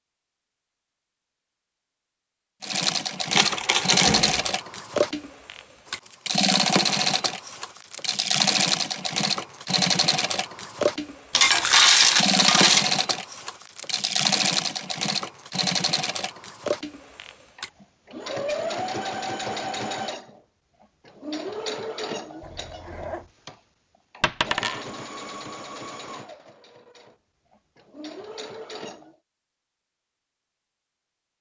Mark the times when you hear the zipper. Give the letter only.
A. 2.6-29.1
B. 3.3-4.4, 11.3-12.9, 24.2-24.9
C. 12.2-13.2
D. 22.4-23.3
D.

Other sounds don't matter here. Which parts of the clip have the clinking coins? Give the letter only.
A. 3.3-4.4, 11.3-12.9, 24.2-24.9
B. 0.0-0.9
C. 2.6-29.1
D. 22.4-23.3
A.